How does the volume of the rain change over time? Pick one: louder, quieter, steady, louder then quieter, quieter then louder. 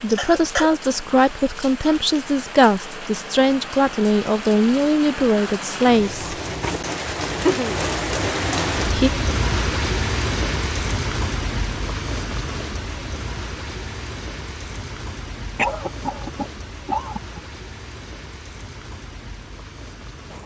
louder then quieter.